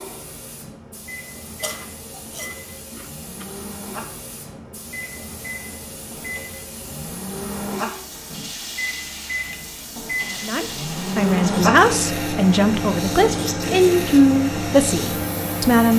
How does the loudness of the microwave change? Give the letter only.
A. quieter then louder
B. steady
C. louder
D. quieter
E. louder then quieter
C.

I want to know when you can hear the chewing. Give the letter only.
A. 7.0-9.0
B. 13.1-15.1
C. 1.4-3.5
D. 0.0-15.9
C.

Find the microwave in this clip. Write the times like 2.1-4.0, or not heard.
0.0-15.9.